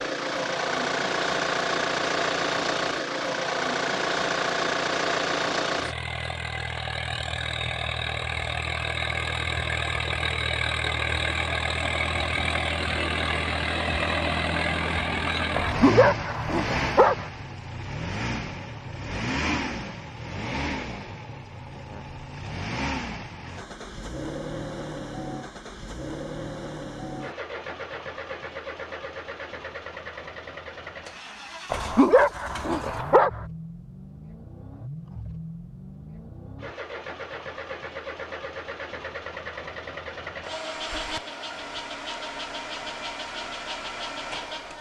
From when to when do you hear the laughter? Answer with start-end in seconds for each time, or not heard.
not heard.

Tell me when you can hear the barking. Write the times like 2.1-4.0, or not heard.
15.6-17.2, 31.7-33.4.